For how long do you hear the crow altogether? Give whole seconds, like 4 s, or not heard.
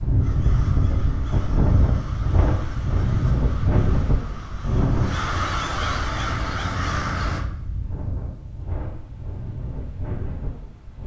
7 s.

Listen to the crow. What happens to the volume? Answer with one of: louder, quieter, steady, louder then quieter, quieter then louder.
louder.